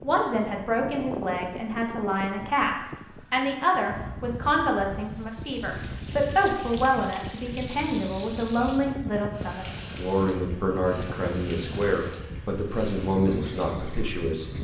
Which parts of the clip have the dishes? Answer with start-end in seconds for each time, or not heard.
not heard.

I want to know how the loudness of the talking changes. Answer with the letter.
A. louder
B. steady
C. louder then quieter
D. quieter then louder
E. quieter
B.